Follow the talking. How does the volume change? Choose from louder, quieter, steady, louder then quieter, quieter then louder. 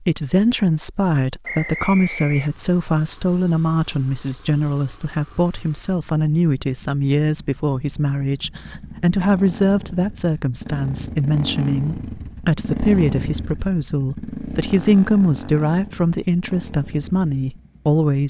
steady.